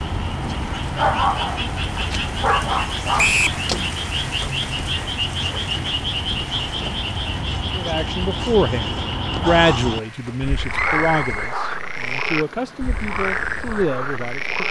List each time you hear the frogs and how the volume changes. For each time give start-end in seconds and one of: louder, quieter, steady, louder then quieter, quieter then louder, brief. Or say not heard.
0.0-14.6 steady.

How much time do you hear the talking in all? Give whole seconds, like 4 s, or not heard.
7 s.